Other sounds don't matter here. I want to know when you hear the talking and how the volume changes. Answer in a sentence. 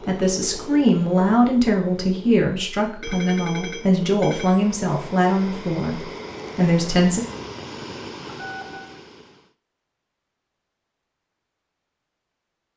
You can hear the talking from 0.1 to 7.2 s, at a steady volume.